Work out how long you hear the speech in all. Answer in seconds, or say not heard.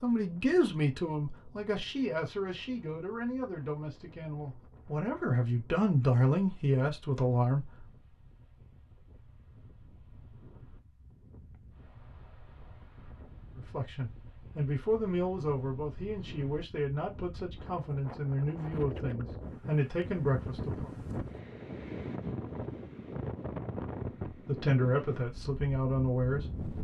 17 s.